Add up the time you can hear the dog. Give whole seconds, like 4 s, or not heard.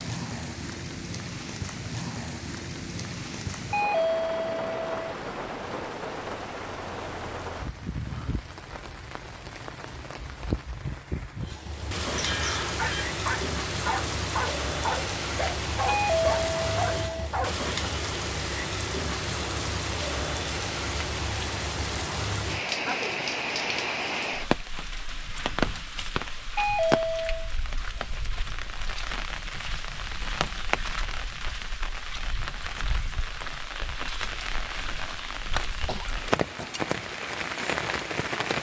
5 s.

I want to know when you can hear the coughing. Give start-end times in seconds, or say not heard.
12.2-13.1, 35.9-36.8.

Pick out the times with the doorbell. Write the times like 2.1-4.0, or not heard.
3.7-4.9, 15.8-17.3, 26.6-27.5.